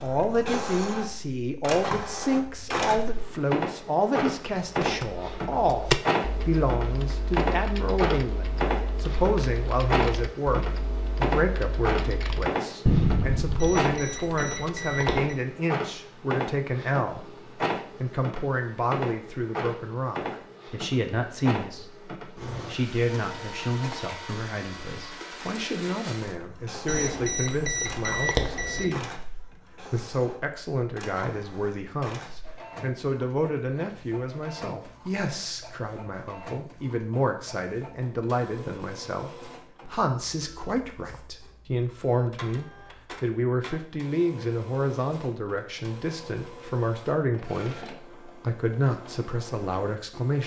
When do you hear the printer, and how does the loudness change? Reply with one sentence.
You can hear the printer from 0.0 to 50.4 s, getting quieter.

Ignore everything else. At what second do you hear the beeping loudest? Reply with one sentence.
The loudest moment of the beeping is at 28 seconds.